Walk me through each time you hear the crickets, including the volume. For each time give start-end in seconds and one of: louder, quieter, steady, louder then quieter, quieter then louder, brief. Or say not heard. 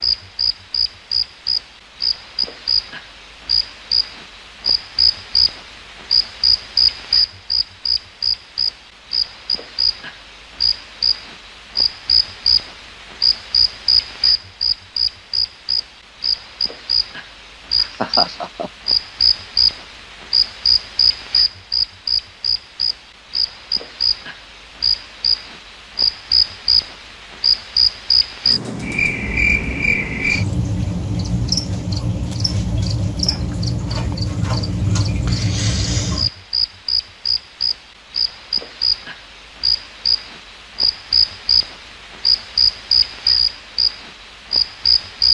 0.0-45.2 steady.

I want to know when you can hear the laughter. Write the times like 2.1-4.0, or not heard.
17.8-18.7.